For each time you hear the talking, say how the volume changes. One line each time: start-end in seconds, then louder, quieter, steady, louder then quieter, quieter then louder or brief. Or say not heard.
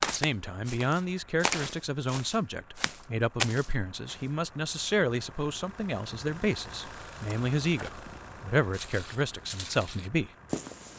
0.0-10.3 steady.